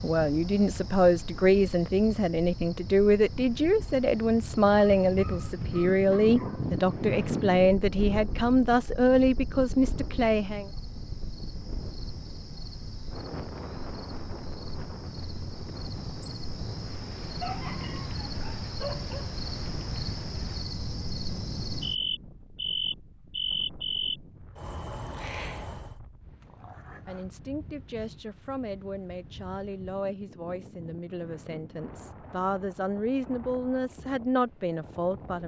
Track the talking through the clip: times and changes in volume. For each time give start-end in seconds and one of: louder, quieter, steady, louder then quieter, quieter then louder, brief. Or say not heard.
0.0-10.7 steady
27.1-35.4 louder.